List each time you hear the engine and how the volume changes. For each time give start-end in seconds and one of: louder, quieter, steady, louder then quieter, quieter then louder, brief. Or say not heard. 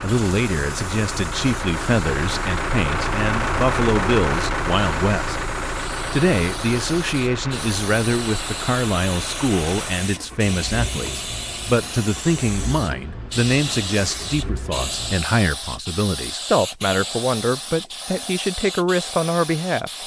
0.0-15.2 quieter.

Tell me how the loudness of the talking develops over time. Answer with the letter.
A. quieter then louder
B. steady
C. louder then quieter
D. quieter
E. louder
B.